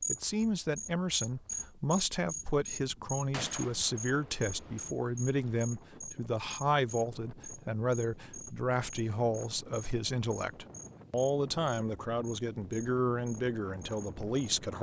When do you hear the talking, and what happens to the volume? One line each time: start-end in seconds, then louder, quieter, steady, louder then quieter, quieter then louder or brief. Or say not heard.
0.1-14.7 steady.